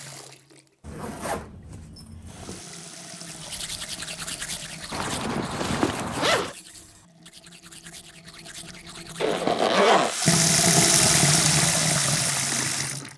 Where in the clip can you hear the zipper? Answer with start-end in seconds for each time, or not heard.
0.8-2.6, 4.9-6.5, 9.2-10.2.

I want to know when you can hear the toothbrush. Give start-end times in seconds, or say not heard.
3.2-9.6.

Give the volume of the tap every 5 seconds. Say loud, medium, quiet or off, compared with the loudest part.
quiet, quiet, loud.